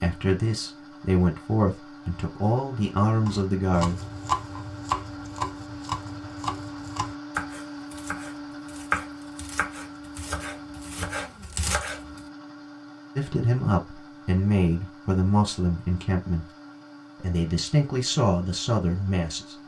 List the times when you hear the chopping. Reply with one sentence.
The chopping can be heard from 3.2 to 12.2 s.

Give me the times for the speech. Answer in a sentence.
You can hear the speech from 0.0 to 4.0 s, from 13.2 to 16.4 s and from 17.2 to 19.6 s.